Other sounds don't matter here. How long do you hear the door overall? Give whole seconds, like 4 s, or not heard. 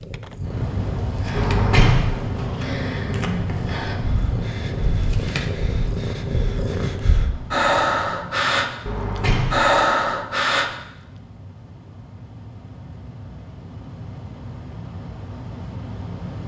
2 s.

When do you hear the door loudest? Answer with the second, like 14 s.
2 s.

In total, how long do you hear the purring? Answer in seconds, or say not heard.
7 s.